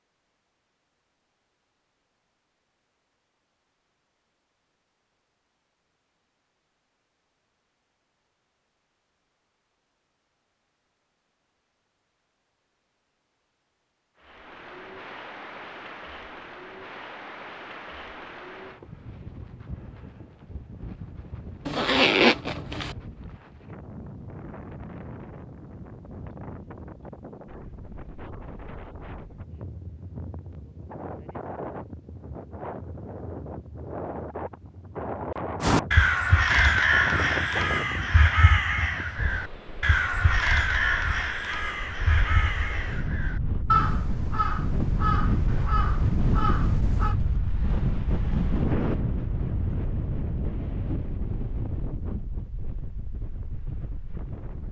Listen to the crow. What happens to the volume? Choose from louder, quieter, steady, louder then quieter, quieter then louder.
quieter.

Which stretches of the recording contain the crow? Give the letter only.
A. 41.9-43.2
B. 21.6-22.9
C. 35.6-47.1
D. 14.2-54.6
C.